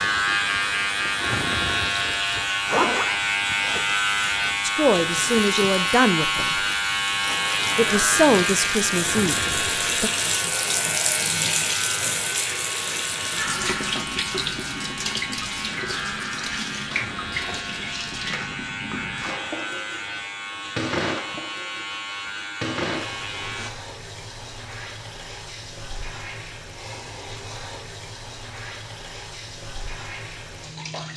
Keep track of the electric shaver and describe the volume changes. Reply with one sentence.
The loudness of the electric shaver goes down.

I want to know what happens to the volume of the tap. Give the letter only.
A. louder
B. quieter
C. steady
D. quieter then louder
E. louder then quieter
E.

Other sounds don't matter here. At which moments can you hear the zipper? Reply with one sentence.
You can hear the zipper from 2.4 to 4.0 s.